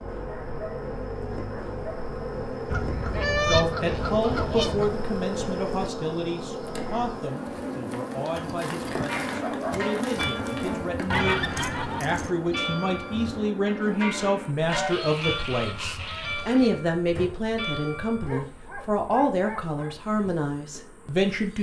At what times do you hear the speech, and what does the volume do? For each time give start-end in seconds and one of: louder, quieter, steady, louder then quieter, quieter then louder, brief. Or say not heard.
3.5-21.5 quieter then louder.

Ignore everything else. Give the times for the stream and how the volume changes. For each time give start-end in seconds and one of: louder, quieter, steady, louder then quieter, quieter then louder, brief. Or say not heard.
not heard.